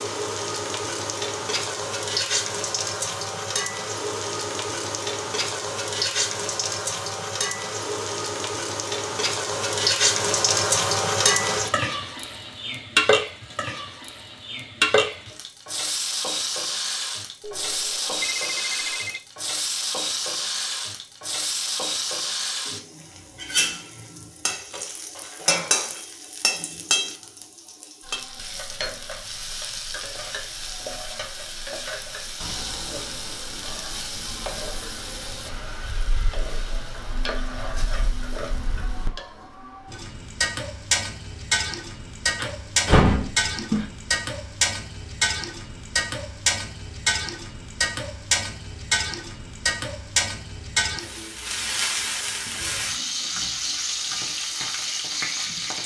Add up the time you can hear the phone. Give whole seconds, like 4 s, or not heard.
2 s.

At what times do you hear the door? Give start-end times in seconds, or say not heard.
42.4-43.9.